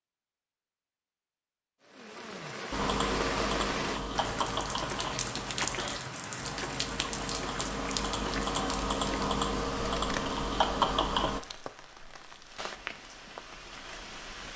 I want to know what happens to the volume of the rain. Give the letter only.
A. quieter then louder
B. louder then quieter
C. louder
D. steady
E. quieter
E.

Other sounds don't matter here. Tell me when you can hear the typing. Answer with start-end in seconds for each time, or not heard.
2.7-11.4.